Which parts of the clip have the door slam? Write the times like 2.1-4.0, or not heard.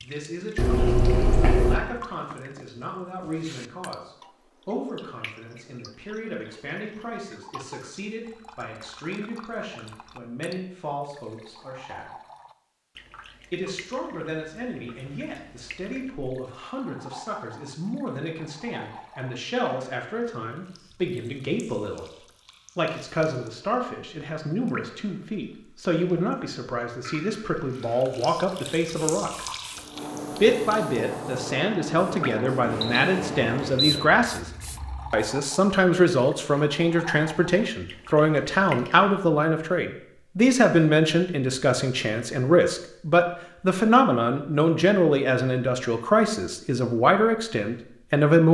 not heard.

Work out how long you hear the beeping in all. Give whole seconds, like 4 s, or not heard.
3 s.